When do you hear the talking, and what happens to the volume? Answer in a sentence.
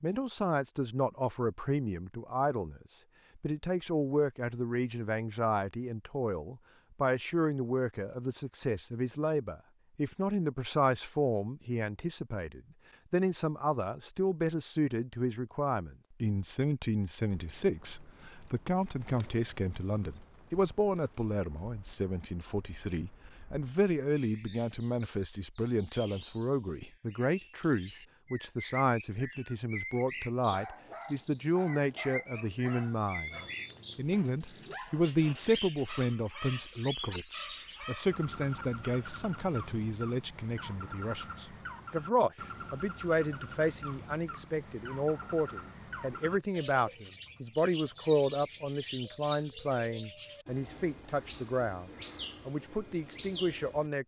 You can hear the talking from 0.0 to 54.0 s, at a steady volume.